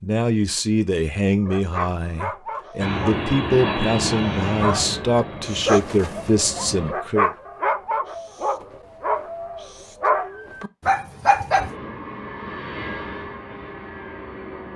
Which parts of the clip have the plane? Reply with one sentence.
The plane can be heard from 2.8 to 7.0 s and from 11.6 to 14.7 s.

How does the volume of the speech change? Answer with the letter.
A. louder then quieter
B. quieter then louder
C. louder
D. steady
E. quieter
B.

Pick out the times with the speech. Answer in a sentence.
The speech can be heard from 0.0 to 7.3 s.